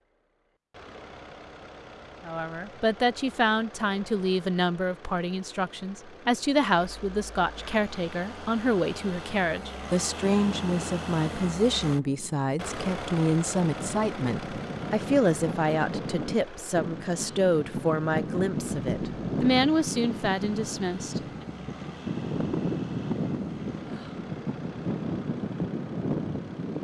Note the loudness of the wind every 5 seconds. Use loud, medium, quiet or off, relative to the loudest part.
off, off, medium, loud, loud, loud.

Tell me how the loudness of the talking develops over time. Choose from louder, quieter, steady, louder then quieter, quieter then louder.
steady.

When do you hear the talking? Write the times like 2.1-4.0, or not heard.
2.2-21.2.